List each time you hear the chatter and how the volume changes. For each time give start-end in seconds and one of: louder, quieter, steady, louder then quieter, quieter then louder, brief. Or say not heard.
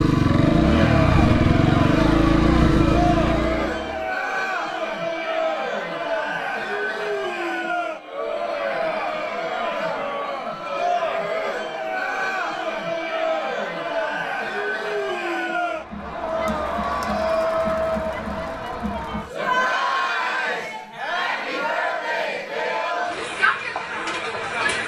0.1-24.8 steady.